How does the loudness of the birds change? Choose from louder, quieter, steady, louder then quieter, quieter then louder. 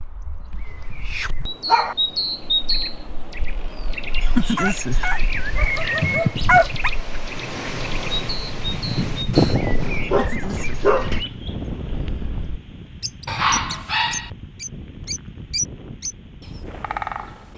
quieter then louder.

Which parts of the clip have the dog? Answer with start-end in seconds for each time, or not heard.
0.7-1.9, 4.5-6.9, 9.3-11.2, 13.2-14.3.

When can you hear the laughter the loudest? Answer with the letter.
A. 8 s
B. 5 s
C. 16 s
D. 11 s
B.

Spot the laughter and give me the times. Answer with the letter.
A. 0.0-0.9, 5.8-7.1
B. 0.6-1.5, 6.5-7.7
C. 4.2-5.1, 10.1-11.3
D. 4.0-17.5
C.